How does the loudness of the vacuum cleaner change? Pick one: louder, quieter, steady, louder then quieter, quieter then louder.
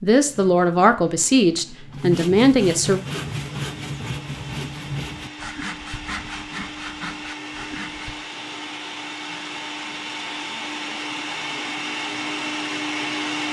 louder.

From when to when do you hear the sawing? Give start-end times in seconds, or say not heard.
0.2-8.2.